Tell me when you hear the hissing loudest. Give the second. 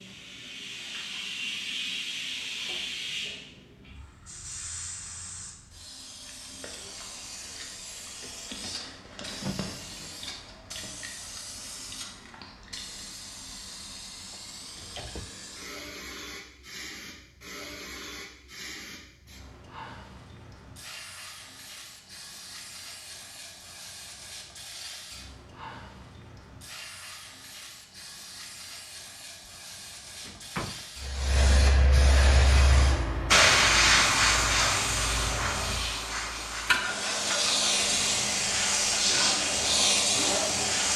34 s.